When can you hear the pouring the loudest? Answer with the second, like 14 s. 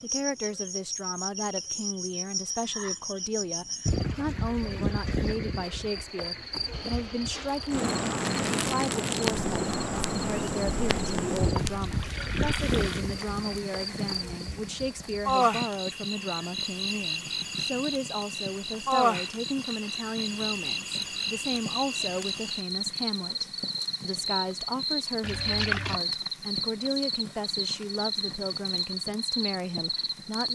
26 s.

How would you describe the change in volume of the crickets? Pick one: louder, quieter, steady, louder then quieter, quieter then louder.
steady.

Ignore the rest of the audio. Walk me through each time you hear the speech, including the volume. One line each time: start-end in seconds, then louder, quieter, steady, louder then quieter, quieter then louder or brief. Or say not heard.
0.0-30.5 steady.